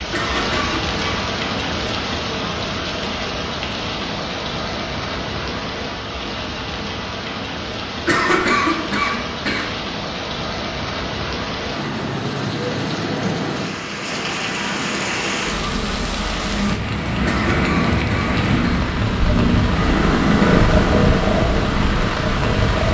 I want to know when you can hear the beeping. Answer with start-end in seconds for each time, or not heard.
not heard.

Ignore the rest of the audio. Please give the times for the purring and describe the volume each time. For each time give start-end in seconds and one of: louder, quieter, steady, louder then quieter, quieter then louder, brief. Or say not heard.
17.1-22.8 louder then quieter.